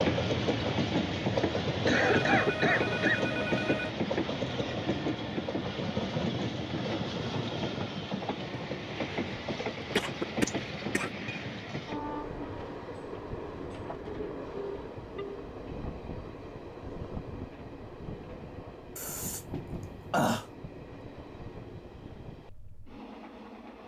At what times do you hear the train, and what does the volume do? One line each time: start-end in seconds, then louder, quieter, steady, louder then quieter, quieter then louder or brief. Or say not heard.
0.0-23.8 quieter.